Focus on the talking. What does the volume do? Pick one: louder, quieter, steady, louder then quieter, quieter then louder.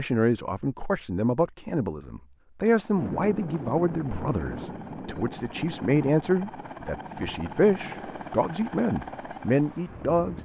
steady.